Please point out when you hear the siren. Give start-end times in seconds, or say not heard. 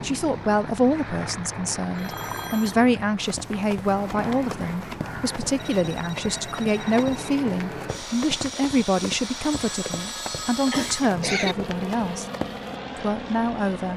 not heard.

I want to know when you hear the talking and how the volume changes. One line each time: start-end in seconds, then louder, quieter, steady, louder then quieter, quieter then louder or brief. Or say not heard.
0.0-12.2 steady
12.9-13.9 brief.